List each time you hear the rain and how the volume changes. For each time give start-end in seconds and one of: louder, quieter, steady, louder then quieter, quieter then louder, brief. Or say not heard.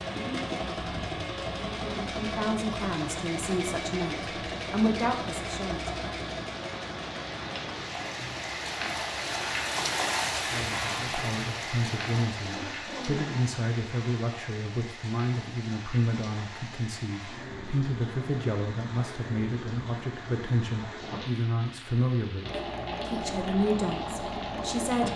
0.0-25.1 louder then quieter.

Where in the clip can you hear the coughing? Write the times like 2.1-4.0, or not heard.
12.4-13.4.